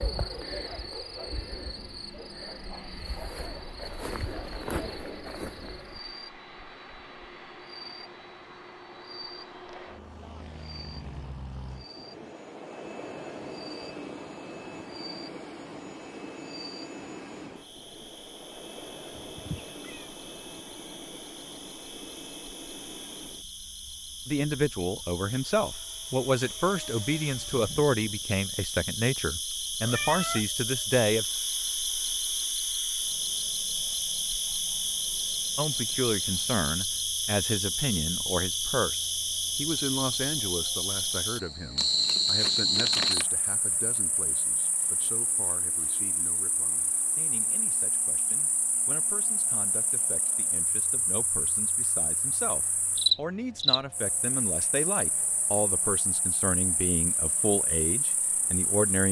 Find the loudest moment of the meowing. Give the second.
30 s.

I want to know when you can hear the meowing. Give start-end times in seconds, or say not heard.
19.2-20.1, 29.9-30.4.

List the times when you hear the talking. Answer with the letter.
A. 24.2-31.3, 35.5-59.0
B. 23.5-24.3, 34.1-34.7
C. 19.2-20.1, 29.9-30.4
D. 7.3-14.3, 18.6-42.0
A.